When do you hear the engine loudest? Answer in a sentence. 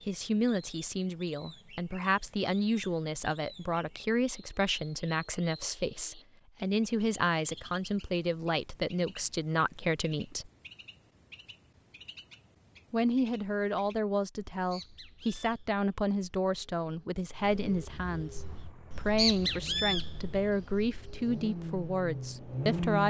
The loudest moment of the engine is at 23 seconds.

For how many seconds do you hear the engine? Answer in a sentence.
You can hear the engine for 5 seconds altogether.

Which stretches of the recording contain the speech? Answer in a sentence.
You can hear the speech from 0.1 to 10.5 s and from 12.9 to 23.0 s.